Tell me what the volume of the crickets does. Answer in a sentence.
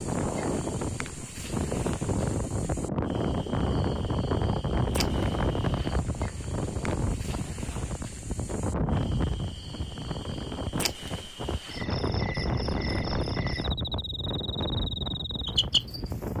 The loudness of the crickets goes up.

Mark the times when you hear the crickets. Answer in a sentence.
You can hear the crickets from 0.0 to 16.3 s.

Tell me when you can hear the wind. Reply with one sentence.
The wind can be heard from 0.0 to 16.3 s.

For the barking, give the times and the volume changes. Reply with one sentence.
The barking can't be heard in this clip.